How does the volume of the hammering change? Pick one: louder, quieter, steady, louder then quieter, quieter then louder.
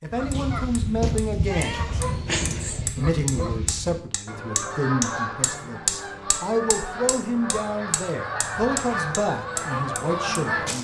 louder then quieter.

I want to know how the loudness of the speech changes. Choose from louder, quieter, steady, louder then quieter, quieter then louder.
steady.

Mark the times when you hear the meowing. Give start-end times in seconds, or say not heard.
1.4-2.9.